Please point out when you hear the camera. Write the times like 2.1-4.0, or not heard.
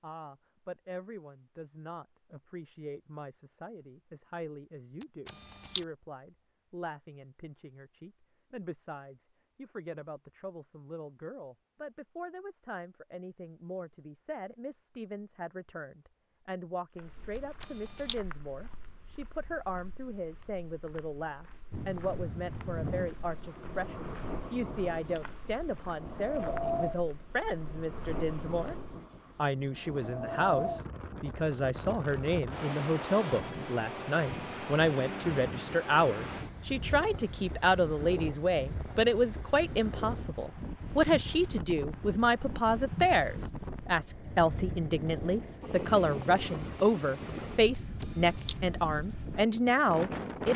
5.0-5.8, 17.4-18.2, 48.0-48.6.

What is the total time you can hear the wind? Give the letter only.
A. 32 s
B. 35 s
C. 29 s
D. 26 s
C.